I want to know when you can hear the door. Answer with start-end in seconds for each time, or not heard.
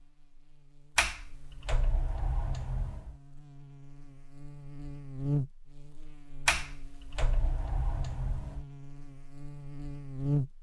0.9-3.1, 6.5-8.7.